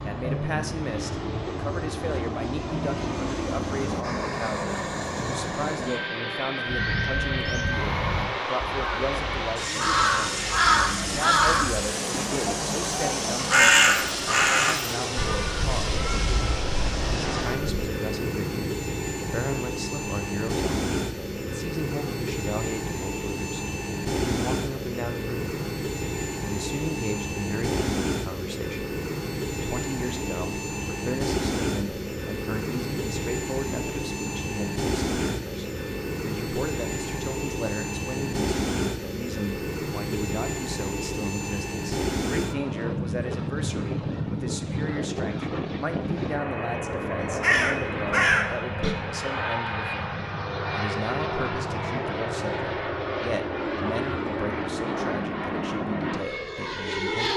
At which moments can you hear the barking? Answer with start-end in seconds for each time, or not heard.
not heard.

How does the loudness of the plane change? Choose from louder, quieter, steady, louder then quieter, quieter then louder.
steady.